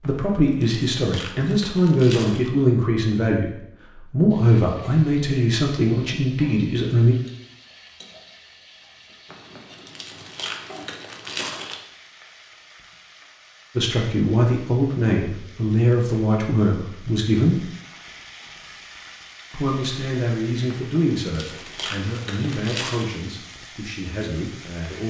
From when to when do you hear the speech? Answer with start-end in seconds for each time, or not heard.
0.0-3.5, 4.1-7.2, 13.8-17.6, 19.5-25.0.